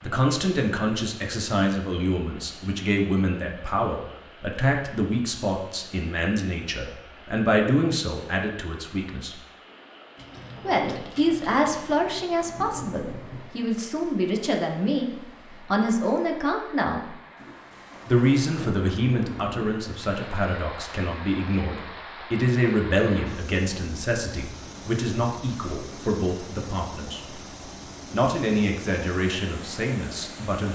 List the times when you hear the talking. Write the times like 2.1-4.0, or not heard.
0.0-9.3, 10.7-15.1, 15.7-17.1, 18.1-27.4, 28.1-30.7.